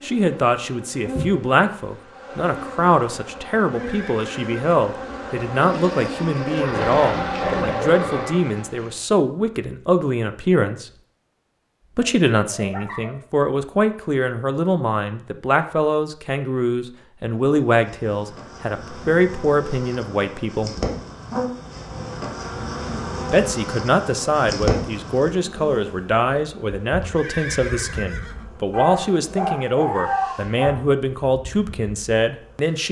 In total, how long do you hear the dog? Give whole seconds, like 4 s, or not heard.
5 s.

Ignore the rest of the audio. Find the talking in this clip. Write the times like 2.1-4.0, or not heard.
0.0-10.9, 11.9-20.8, 23.3-32.8.